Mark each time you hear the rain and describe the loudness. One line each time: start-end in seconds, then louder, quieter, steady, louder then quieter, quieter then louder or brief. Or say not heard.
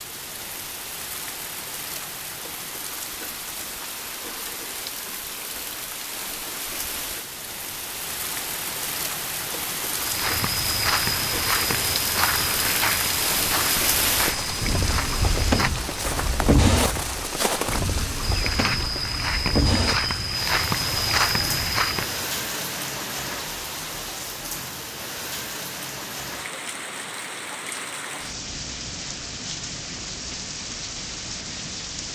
0.0-32.1 louder then quieter.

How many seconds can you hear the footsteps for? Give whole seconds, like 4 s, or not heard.
12 s.